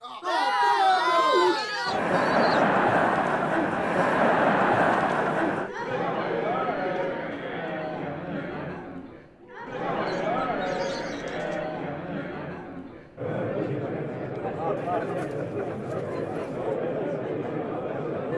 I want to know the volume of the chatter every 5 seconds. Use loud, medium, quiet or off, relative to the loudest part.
loud, medium, medium, medium.